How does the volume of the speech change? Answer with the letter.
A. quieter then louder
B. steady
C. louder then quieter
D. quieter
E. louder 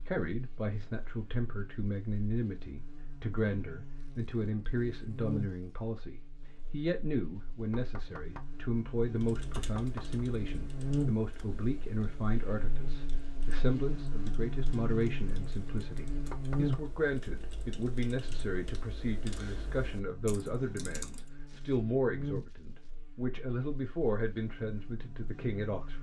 B.